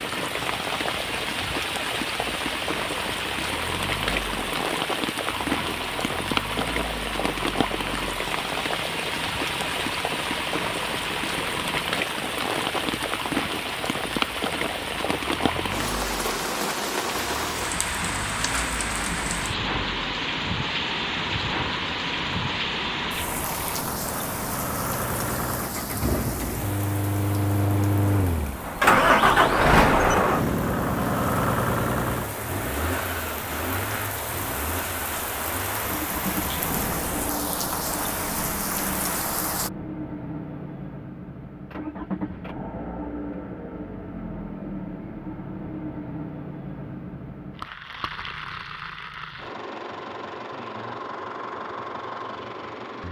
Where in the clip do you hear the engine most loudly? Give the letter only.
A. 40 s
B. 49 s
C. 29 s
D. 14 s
C.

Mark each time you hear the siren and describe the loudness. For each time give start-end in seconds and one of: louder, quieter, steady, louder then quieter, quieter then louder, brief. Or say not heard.
not heard.